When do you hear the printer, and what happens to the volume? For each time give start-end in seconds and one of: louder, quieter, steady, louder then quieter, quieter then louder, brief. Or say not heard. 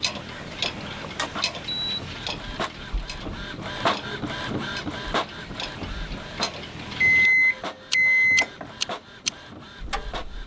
0.0-10.4 louder then quieter.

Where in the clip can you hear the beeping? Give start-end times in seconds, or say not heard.
0.3-2.0, 7.0-8.7.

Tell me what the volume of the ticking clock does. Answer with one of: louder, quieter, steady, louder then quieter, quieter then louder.
quieter then louder.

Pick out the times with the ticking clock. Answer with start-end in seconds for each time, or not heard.
0.0-10.4.